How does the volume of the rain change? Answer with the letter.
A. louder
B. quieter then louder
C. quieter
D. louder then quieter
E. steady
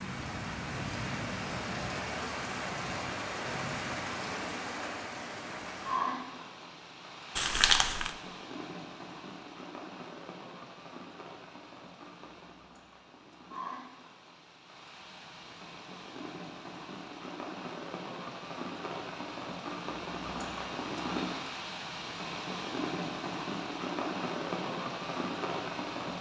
B.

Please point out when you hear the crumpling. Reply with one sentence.
The crumpling can be heard from 7.3 to 8.1 s.